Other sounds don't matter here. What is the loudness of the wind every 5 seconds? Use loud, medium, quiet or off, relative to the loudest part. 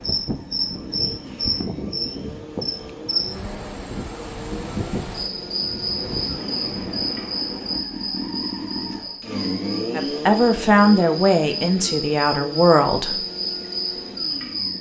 loud, loud, off.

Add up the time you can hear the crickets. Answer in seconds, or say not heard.
15 s.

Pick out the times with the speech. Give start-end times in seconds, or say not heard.
9.9-13.2.